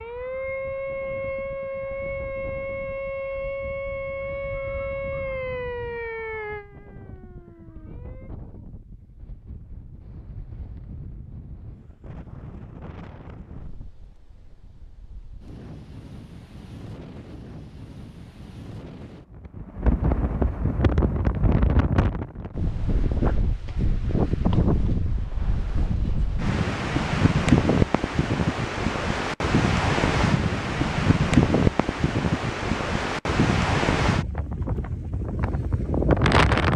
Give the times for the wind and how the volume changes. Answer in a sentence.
You can hear the wind from 0.0 to 36.7 s, getting louder.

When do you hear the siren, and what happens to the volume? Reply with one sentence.
You can hear the siren from 0.0 to 8.3 s, getting quieter.